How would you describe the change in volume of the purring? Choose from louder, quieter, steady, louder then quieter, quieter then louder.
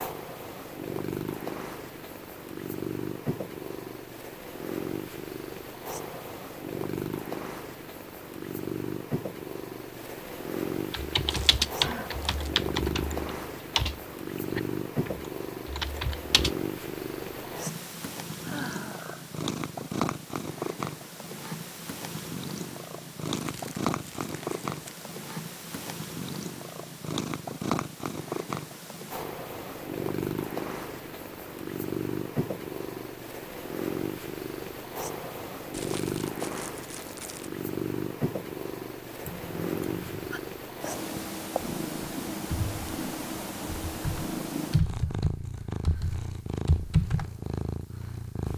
steady.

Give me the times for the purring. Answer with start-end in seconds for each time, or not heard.
0.0-48.5.